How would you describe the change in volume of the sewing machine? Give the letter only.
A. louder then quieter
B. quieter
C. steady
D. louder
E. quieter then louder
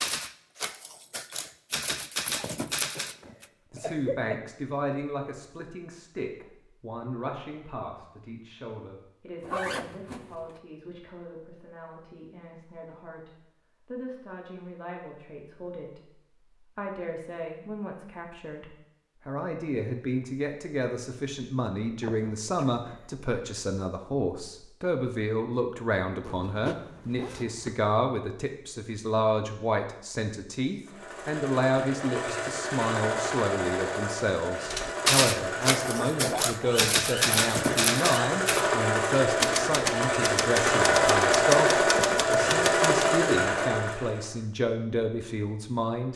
D.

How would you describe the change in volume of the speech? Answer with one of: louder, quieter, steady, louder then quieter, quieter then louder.
louder.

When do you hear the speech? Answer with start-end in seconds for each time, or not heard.
3.7-46.1.